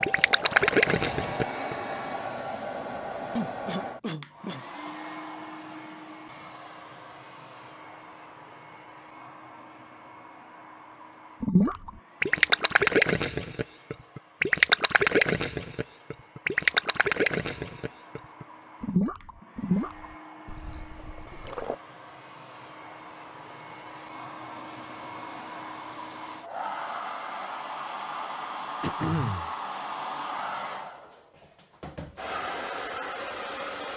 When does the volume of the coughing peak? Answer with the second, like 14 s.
29 s.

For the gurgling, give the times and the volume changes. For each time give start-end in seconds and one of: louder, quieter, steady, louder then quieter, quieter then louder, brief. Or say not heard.
0.0-1.8 brief
11.4-21.8 quieter.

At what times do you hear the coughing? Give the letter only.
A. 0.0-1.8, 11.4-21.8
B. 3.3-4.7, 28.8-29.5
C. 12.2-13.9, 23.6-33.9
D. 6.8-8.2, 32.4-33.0
B.